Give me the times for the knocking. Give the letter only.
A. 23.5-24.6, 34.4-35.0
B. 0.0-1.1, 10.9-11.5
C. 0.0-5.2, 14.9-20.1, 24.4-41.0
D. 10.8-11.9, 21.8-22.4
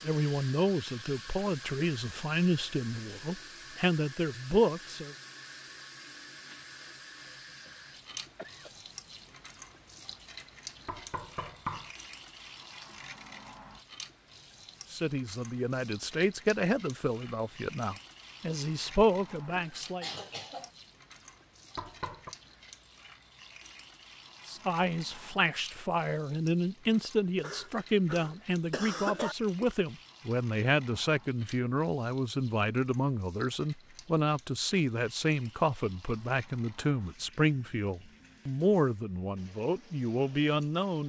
D.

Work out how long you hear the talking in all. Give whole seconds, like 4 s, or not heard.
27 s.